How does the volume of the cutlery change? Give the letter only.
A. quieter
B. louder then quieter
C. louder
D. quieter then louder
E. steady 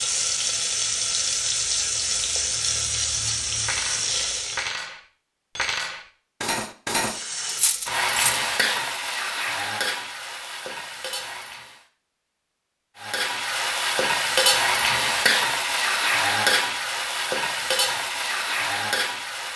D.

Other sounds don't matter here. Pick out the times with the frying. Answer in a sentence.
The frying can be heard from 0.0 to 4.7 s, from 7.0 to 11.8 s and from 13.0 to 19.5 s.